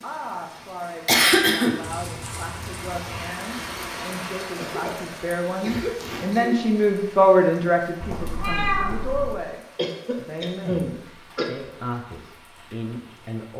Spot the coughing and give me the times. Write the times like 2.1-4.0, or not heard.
1.1-1.8, 4.5-6.5, 9.8-11.4.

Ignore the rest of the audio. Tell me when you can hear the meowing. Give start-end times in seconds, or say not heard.
1.8-3.4, 8.0-9.3.